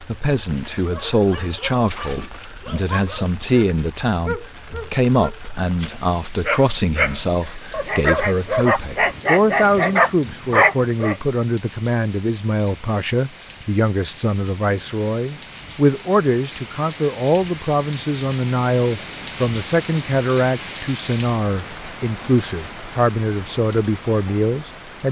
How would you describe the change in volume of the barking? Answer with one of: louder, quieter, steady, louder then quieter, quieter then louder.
louder.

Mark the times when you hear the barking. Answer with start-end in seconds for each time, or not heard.
0.8-11.2.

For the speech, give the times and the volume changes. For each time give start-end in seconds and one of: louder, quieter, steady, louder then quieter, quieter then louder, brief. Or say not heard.
0.0-25.0 steady.